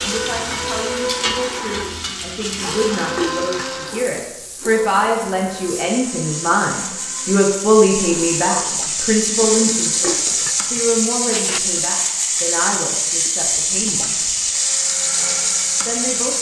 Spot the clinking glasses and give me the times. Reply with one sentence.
You can hear the clinking glasses from 3.1 to 3.7 s and from 10.0 to 11.6 s.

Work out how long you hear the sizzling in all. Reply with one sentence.
The sizzling can be heard for 16 seconds in total.